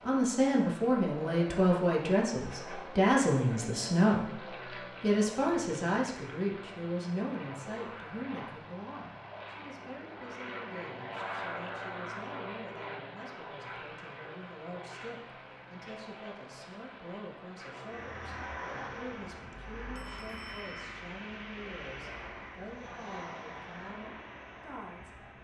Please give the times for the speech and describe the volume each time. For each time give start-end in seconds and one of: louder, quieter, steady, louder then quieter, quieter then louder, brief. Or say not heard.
0.1-25.3 quieter.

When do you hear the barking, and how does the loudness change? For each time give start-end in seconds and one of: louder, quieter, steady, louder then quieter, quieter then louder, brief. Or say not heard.
not heard.